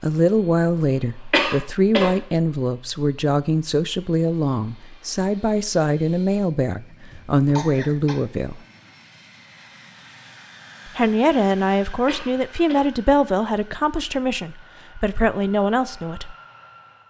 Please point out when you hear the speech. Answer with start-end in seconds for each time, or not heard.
0.0-8.6, 10.8-16.4.